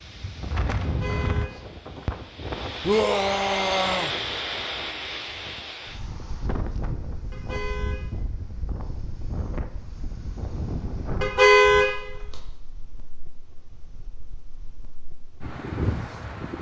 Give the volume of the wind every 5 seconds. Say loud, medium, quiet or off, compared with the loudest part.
loud, medium, medium, loud.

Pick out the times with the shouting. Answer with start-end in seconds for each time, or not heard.
2.9-4.1.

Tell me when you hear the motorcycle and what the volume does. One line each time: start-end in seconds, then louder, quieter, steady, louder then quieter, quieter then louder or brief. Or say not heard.
not heard.